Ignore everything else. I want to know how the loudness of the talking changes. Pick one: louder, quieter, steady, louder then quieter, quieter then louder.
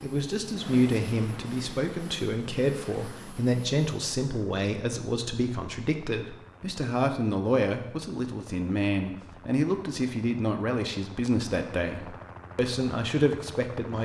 steady.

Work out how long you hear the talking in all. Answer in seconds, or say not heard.
14 s.